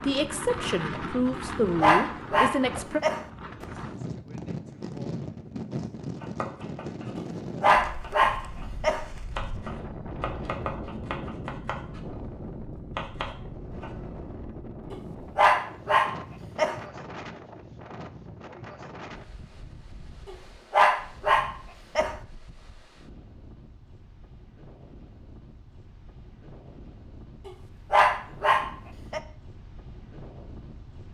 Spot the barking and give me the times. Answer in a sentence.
The barking can be heard from 1.4 to 3.2 s, from 7.2 to 9.1 s, from 14.9 to 16.8 s, from 20.2 to 22.1 s and from 27.4 to 29.2 s.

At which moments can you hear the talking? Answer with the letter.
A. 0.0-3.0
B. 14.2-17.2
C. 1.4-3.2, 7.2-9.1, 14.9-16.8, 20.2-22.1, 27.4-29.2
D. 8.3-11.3
A.